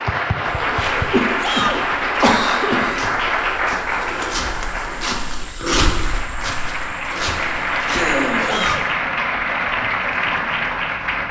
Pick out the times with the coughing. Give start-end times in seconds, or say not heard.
1.1-3.1, 7.8-8.8.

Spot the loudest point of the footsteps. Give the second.
6 s.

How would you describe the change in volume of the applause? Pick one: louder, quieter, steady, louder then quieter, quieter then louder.
quieter then louder.